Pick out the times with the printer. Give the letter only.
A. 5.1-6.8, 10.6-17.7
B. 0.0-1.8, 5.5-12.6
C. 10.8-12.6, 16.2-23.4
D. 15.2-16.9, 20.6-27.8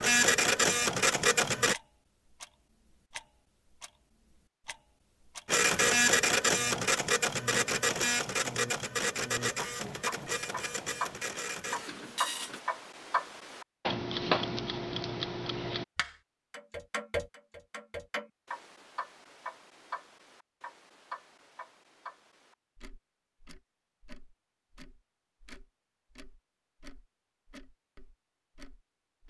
B.